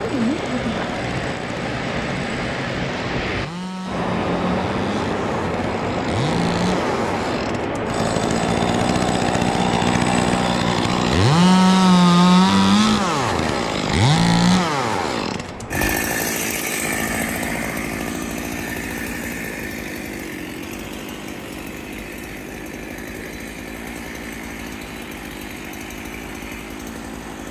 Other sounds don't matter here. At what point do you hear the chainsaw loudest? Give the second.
12 s.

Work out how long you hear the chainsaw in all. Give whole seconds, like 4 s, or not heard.
27 s.